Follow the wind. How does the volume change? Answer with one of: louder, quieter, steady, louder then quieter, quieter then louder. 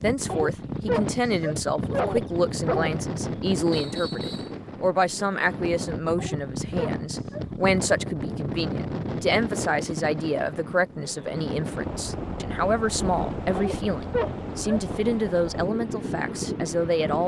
steady.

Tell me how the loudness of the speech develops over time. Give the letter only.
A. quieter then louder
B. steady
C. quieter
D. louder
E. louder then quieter
B.